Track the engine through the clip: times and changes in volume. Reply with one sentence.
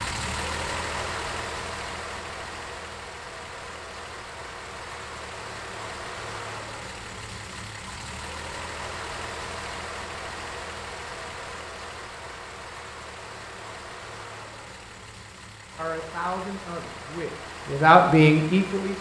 You can hear the engine from 0.0 to 18.9 s, getting quieter.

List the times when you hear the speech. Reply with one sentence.
You can hear the speech from 15.8 to 18.9 s.